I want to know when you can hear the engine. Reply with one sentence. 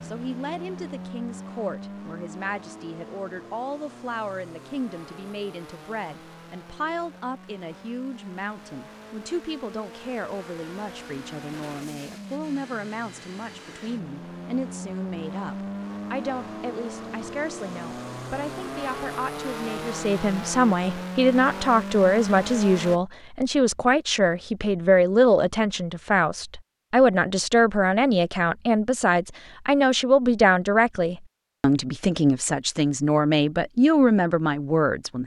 You can hear the engine from 0.0 to 23.0 s.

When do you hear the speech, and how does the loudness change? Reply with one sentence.
You can hear the speech from 0.0 to 35.2 s, getting louder.